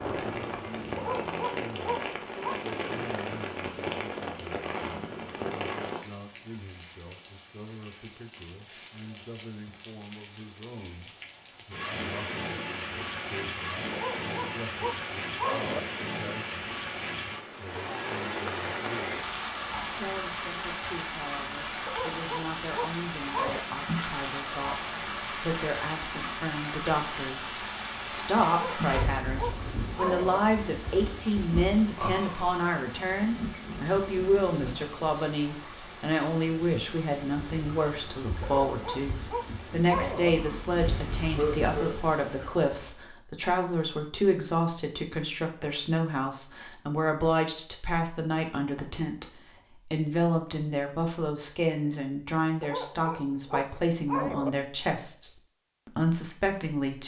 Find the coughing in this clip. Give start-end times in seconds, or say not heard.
41.2-42.5.